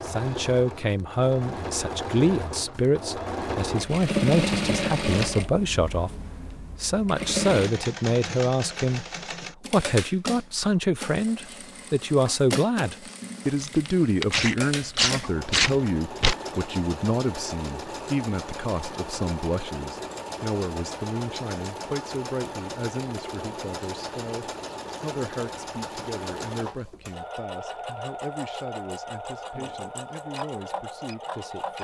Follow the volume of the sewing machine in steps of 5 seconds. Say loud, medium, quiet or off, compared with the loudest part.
loud, loud, medium, medium, medium, medium, medium.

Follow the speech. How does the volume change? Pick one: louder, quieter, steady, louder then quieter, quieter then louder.
quieter.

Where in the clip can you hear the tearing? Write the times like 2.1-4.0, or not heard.
13.6-16.4.